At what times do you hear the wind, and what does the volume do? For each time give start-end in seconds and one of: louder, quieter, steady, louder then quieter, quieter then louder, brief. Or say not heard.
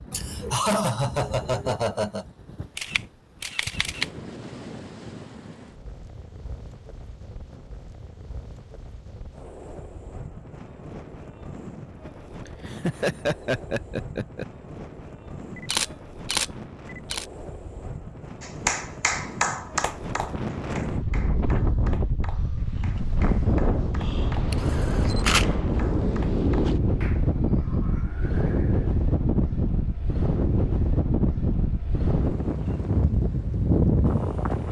0.0-34.6 louder.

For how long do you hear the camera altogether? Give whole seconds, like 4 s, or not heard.
4 s.